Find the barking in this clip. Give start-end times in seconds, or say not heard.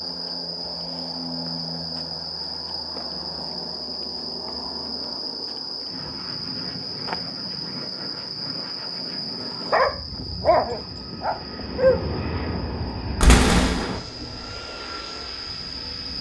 9.4-12.0.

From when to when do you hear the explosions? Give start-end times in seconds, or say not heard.
13.2-14.0.